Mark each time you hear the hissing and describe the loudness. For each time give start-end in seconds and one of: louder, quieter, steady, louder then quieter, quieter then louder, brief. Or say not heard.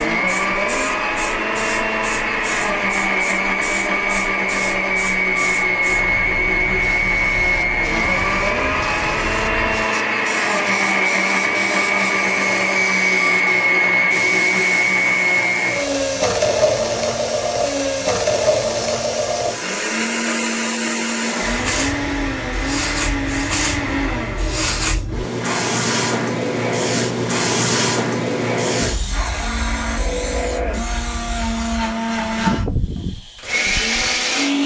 0.2-34.6 louder.